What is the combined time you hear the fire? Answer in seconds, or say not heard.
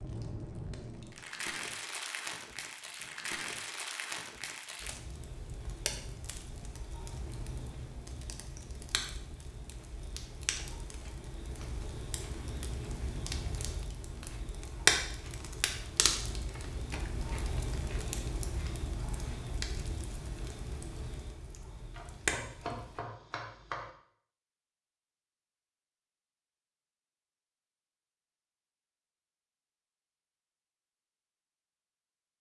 23 s.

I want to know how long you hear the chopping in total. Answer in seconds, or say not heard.
2 s.